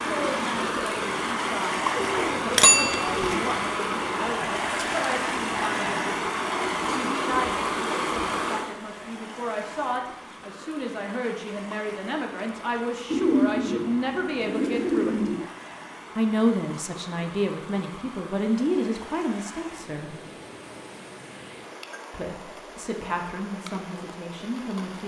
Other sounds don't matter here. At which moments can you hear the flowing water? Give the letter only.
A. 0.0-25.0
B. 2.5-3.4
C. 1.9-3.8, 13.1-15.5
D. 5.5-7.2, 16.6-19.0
A.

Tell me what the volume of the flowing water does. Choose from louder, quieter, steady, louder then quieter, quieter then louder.
quieter.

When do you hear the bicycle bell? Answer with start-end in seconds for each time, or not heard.
2.5-3.4.